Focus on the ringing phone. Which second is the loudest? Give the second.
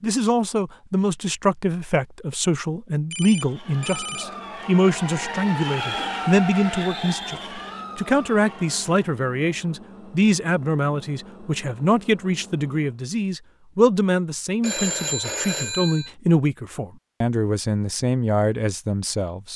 15 s.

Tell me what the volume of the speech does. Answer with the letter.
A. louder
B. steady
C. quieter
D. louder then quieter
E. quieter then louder
B.